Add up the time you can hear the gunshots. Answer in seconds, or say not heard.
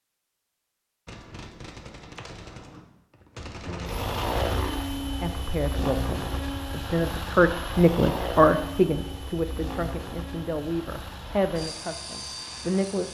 4 s.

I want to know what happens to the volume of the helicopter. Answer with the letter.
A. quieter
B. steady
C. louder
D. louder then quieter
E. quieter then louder
A.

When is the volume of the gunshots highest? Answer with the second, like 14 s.
4 s.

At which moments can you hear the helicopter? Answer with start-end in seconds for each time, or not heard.
3.6-13.0.